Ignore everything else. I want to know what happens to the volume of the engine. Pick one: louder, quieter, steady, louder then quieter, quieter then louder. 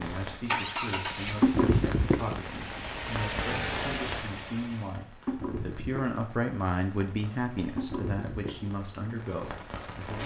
quieter then louder.